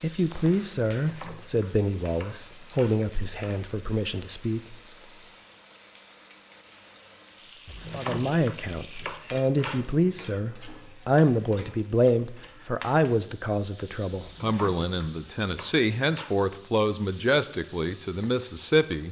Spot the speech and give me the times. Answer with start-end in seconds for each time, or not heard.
0.0-4.8, 7.9-19.0.